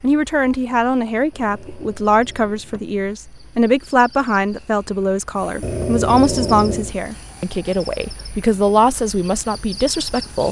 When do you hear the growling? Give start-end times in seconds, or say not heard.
1.3-3.0, 5.6-7.0.